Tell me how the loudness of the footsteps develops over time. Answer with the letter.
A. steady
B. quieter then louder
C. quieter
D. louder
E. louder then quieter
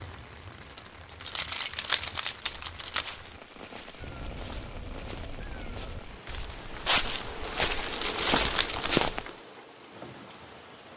D.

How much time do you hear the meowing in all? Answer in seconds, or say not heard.
2 s.